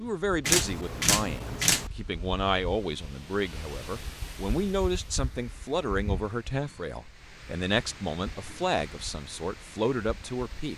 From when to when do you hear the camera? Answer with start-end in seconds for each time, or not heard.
0.5-1.9.